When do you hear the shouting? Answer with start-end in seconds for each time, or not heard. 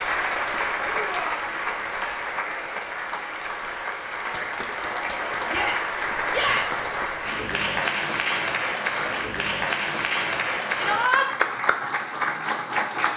0.9-1.4, 5.5-6.8, 10.8-11.2.